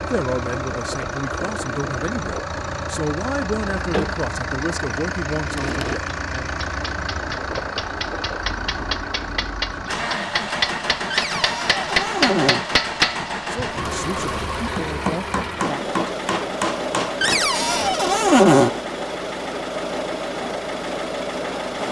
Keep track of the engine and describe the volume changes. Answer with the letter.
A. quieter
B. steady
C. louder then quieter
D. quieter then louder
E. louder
B.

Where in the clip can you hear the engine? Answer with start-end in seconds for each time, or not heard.
0.0-21.8.